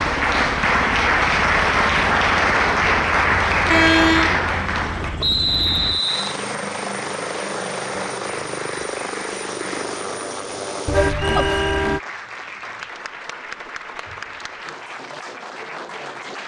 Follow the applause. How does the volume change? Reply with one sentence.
The loudness of the applause goes down.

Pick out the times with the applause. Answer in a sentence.
The applause can be heard from 0.0 to 16.4 s.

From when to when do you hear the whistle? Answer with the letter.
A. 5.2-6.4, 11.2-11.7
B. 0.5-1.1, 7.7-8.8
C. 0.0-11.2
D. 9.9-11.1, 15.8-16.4
A.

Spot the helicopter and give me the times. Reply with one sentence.
The helicopter can be heard from 0.0 to 11.2 s.